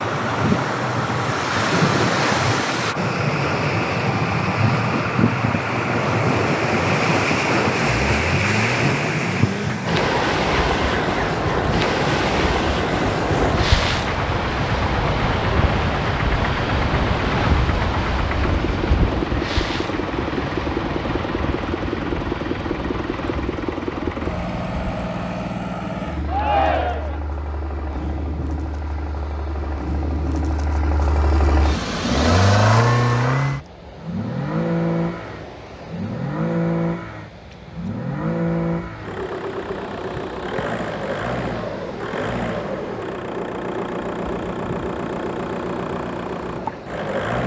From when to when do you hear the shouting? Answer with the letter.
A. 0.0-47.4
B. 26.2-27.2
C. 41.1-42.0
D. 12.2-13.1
B.